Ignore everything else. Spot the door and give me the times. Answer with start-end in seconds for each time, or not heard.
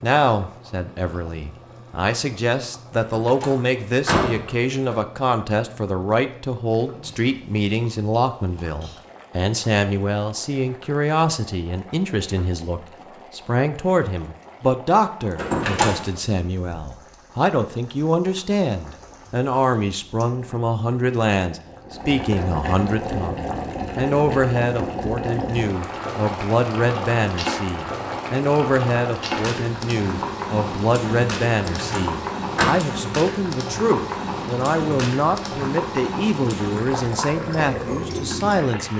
3.0-5.0, 15.3-16.2, 31.6-32.7.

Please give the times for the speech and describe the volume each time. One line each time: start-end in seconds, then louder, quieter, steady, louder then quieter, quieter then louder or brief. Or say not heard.
0.0-38.9 steady.